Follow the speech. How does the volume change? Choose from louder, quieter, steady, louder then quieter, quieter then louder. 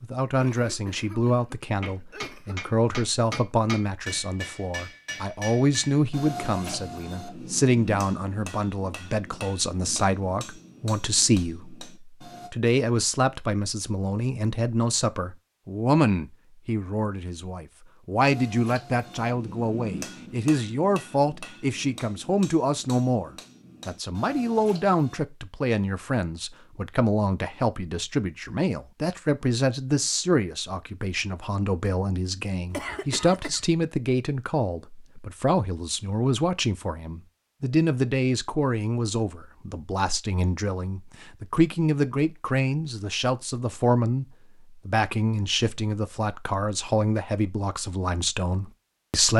steady.